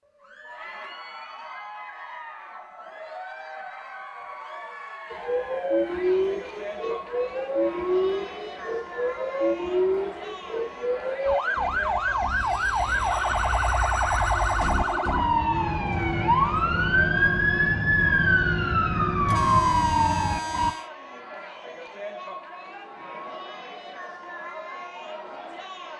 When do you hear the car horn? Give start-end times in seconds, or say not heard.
19.2-20.9.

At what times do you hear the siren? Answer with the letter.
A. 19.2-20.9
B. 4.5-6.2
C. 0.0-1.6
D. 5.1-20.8
D.